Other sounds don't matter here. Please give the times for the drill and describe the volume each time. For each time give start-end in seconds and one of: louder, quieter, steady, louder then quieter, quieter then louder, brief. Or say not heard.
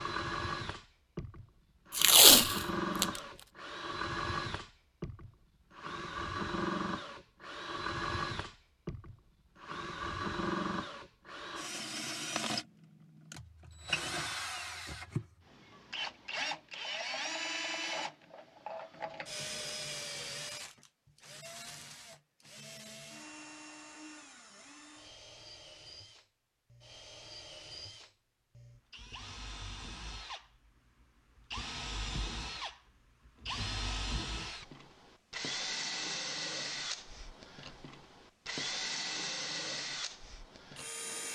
0.0-41.3 quieter then louder.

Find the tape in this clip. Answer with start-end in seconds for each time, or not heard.
1.9-3.2.